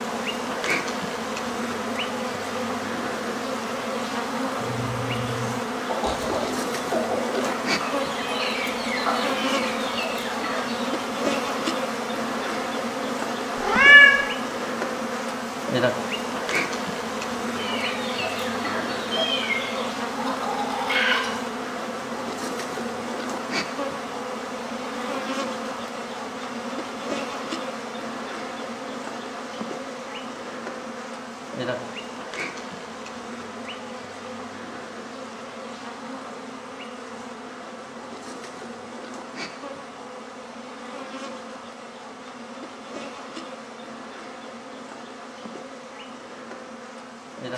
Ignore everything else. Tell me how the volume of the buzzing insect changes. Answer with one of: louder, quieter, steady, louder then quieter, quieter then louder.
quieter.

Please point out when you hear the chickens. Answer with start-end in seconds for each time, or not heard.
4.5-10.9, 17.6-21.4.